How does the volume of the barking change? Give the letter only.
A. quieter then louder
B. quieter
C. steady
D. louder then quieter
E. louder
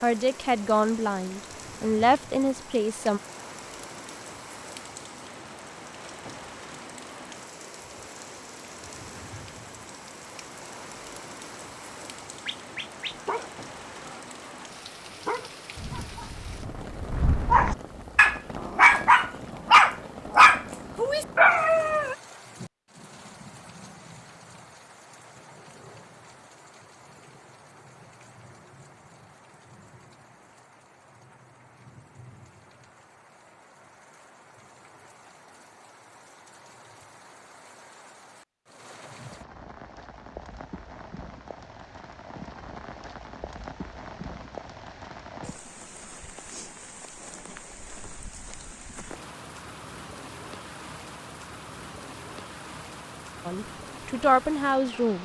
E.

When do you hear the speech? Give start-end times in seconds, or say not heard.
0.0-3.2, 53.5-55.1.